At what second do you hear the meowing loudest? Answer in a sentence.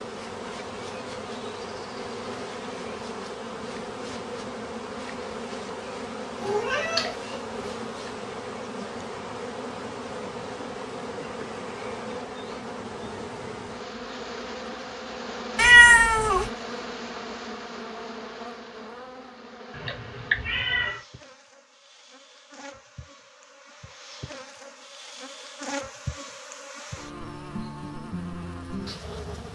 The loudest moment of the meowing is at 16 seconds.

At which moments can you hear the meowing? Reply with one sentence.
You can hear the meowing from 6.4 to 7.7 s, from 15.6 to 16.5 s and from 19.7 to 21.0 s.